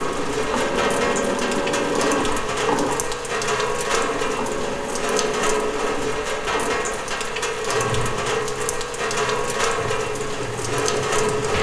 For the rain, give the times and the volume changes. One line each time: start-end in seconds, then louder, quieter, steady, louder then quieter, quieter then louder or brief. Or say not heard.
0.0-11.5 steady.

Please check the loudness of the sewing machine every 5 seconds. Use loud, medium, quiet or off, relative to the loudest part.
loud, medium, medium.